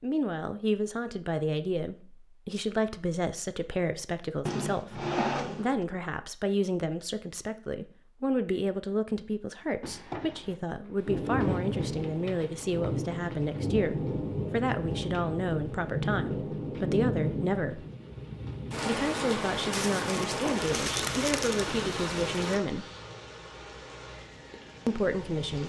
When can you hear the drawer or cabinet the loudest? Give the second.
5 s.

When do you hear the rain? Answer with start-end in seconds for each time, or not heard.
11.1-25.6.